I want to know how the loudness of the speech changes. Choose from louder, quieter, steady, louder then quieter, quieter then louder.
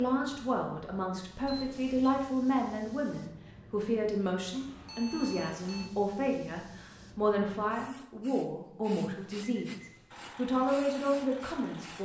steady.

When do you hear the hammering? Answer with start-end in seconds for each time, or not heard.
not heard.